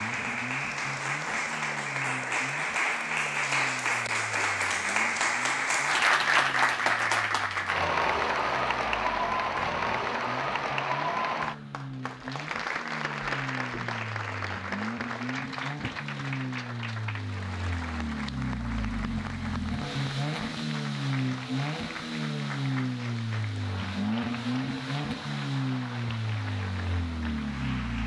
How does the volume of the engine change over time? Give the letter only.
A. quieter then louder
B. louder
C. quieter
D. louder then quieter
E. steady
B.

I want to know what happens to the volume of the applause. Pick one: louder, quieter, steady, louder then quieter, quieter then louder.
quieter.